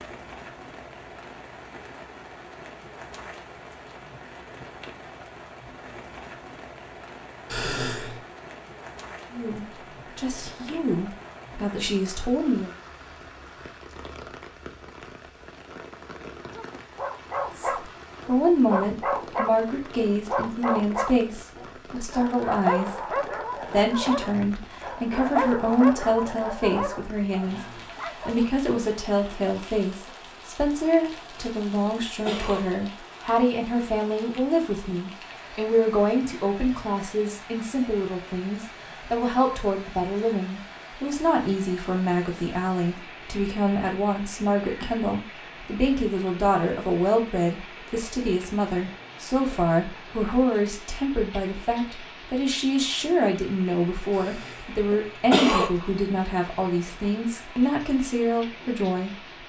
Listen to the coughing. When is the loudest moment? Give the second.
55 s.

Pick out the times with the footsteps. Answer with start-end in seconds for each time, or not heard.
not heard.